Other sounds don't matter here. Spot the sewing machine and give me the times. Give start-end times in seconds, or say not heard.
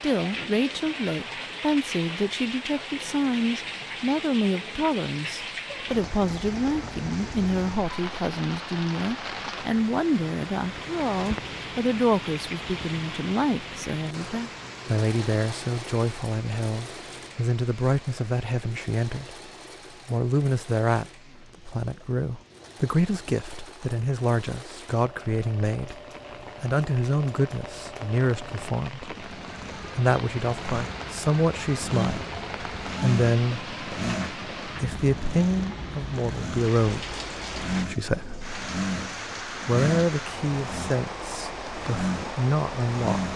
14.0-43.3.